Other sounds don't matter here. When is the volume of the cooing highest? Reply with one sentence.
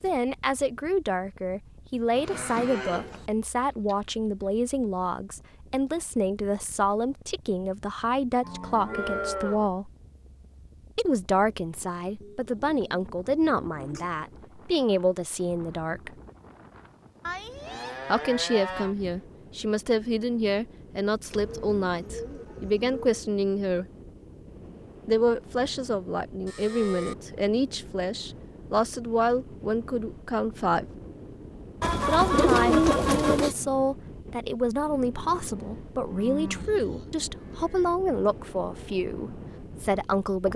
The volume of the cooing peaks at 33 seconds.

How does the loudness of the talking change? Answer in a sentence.
The volume of the talking stays about the same.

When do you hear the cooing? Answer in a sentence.
The cooing can be heard from 3.6 to 4.0 s, from 12.2 to 14.1 s, from 21.3 to 23.2 s and from 31.8 to 33.5 s.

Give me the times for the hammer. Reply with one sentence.
The hammer can't be heard in this clip.